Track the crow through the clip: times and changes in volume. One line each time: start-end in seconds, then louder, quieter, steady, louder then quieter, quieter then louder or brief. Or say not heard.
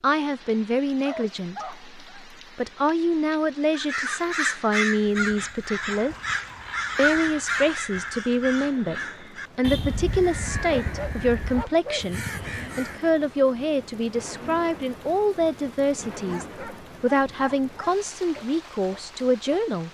3.7-13.2 quieter.